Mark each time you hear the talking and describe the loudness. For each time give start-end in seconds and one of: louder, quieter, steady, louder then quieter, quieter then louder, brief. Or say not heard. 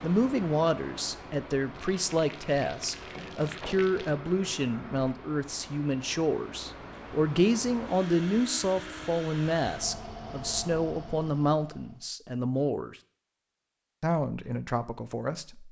0.0-12.9 steady
14.0-15.6 brief.